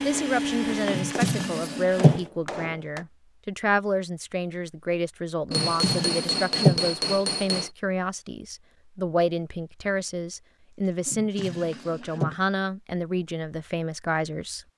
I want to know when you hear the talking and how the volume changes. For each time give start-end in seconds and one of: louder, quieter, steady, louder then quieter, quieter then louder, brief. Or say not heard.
0.0-14.7 steady.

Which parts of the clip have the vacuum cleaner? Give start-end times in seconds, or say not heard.
0.0-2.3.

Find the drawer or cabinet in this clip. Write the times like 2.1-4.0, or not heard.
0.9-2.2, 5.5-6.8, 11.1-12.3.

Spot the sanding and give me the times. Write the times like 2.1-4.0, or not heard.
not heard.